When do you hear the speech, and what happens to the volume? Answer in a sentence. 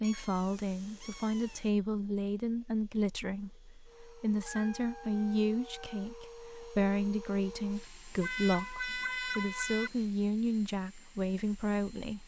You can hear the speech from 0.0 to 12.2 s, at a steady volume.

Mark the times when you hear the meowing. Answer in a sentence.
The meowing can be heard from 0.0 to 1.7 s, from 4.4 to 6.1 s and from 8.2 to 9.9 s.